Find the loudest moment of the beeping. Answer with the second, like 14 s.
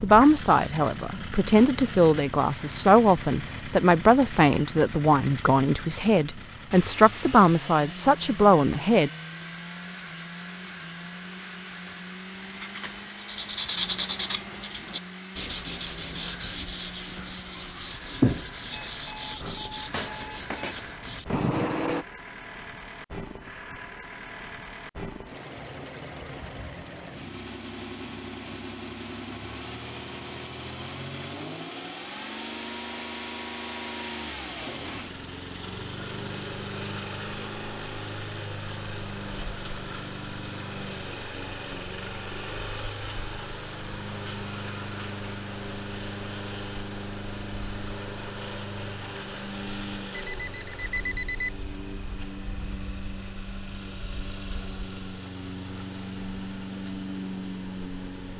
51 s.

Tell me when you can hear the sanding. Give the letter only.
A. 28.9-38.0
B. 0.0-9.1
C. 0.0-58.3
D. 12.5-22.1
D.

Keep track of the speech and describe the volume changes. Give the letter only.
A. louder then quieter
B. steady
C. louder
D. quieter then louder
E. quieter
B.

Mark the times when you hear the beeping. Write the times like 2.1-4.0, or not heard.
18.7-20.8, 50.1-51.5.